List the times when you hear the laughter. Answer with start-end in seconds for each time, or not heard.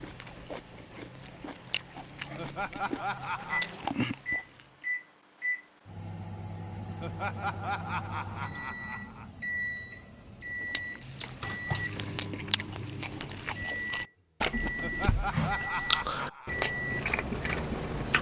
2.4-3.7, 7.0-9.2, 14.8-16.6.